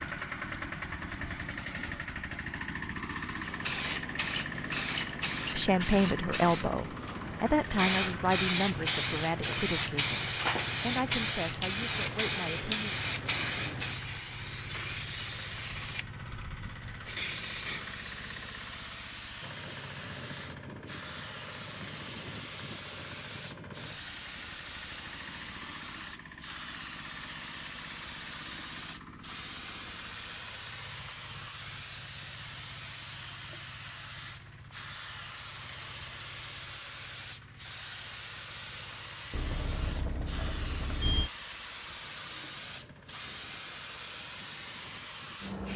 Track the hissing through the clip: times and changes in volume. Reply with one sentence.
You can hear the hissing from 3.4 to 45.7 s, getting quieter.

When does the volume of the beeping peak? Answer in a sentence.
The volume of the beeping peaks at 41 seconds.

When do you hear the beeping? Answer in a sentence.
The beeping can be heard from 39.3 to 41.3 s.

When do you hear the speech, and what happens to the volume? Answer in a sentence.
You can hear the speech from 5.5 to 12.9 s, getting quieter.